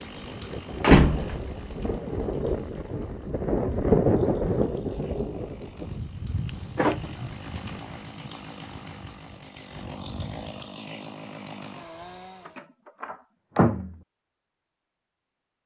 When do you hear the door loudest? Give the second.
1 s.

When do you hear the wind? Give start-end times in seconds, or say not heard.
0.0-10.7.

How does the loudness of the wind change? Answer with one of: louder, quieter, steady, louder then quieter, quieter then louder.
louder then quieter.